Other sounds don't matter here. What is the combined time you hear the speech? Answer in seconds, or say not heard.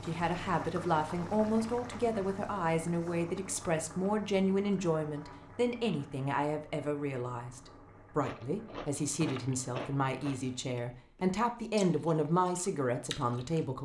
14 s.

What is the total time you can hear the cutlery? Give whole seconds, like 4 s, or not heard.
not heard.